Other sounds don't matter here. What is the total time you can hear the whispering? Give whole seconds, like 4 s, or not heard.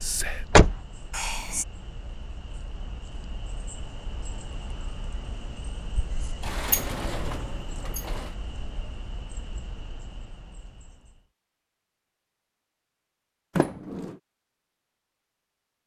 2 s.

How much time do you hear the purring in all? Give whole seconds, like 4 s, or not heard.
not heard.